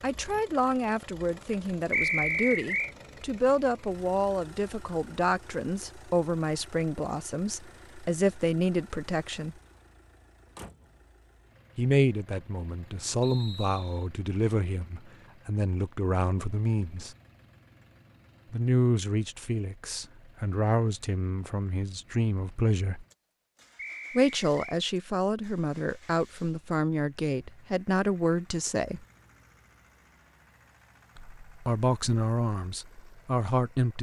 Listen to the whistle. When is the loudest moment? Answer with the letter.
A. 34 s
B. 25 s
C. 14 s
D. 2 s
D.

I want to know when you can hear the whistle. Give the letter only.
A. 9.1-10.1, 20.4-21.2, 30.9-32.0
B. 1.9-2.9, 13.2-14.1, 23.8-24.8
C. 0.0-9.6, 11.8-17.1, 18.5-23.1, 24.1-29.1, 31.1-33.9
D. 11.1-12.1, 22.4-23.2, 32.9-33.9
B.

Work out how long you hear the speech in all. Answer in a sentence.
You can hear the speech for 27 seconds altogether.